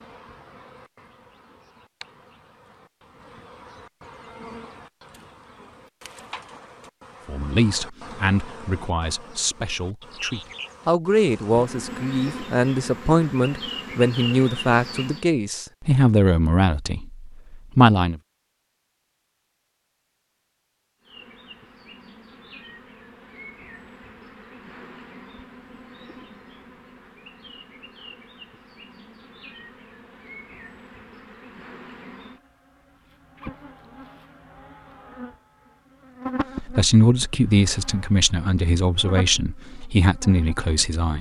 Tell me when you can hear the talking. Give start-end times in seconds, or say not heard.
7.2-18.2, 36.6-41.1.